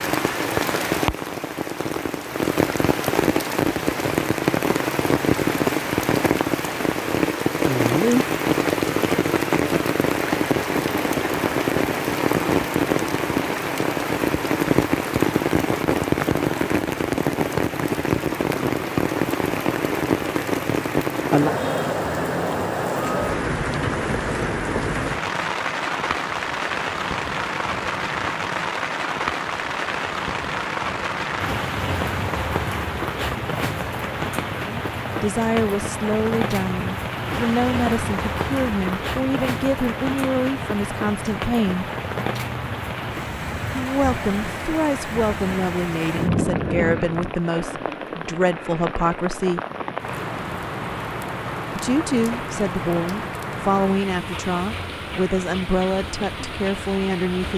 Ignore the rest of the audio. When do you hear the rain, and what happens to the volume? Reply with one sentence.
You can hear the rain from 0.0 to 57.5 s, getting quieter.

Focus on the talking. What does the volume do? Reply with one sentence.
The loudness of the talking stays about the same.